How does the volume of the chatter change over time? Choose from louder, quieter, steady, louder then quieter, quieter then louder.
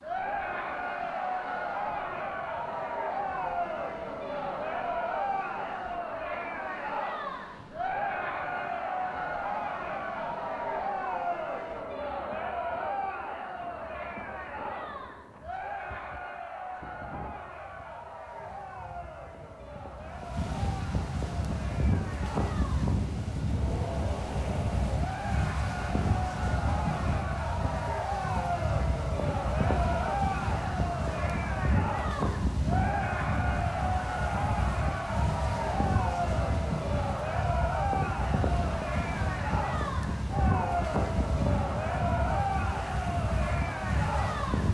quieter then louder.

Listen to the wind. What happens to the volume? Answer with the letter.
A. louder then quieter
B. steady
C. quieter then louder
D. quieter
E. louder
E.